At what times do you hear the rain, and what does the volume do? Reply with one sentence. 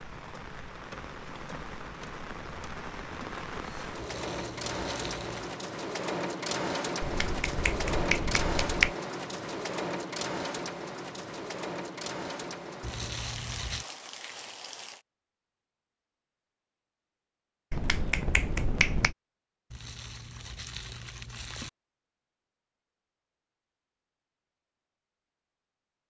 You can hear the rain from 0.0 to 15.1 s, getting louder then quieter.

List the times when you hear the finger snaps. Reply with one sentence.
You can hear the finger snaps from 7.0 to 8.9 s and from 17.7 to 19.1 s.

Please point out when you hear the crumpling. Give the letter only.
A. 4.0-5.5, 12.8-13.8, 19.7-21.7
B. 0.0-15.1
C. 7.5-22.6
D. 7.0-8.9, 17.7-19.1
A.